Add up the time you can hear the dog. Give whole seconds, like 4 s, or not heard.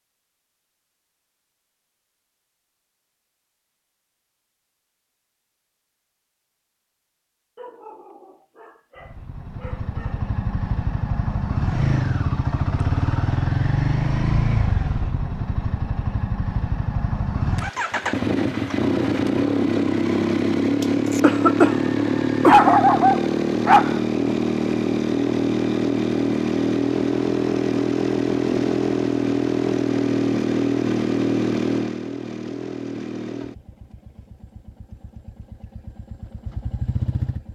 4 s.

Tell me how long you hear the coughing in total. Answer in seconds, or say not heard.
2 s.